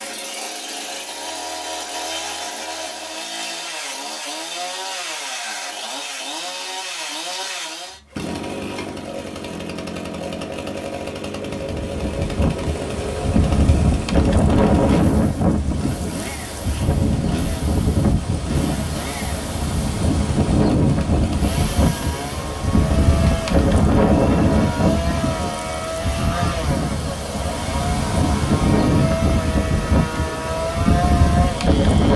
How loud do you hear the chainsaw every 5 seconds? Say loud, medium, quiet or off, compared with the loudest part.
loud, loud, loud, medium, loud, loud, loud.